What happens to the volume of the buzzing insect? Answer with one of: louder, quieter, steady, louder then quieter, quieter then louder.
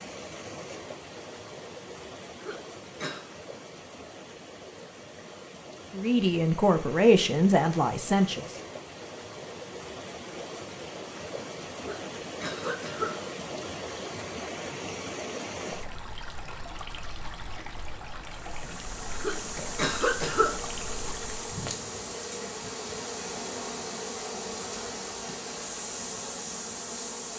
steady.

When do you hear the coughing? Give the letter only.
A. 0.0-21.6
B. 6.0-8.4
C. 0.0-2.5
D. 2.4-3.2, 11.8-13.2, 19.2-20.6
D.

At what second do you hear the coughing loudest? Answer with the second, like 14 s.
20 s.